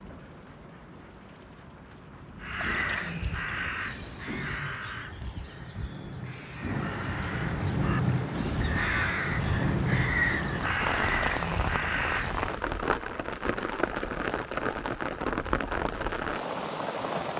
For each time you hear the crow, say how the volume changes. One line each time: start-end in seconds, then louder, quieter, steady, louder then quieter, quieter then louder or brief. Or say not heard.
2.4-12.4 quieter then louder.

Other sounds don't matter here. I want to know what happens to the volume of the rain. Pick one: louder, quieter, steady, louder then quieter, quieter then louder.
louder.